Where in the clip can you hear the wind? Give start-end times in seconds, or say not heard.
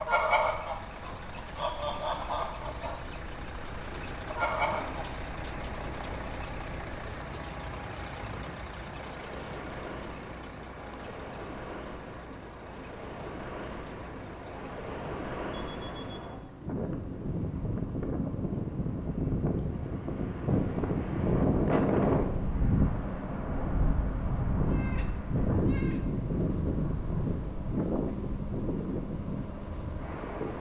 0.0-30.5.